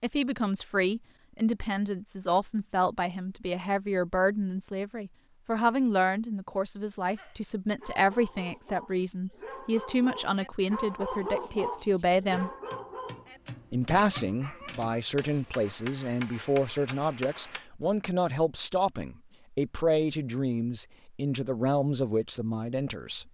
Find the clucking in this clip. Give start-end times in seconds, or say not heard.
not heard.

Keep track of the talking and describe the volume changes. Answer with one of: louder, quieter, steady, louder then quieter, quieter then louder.
steady.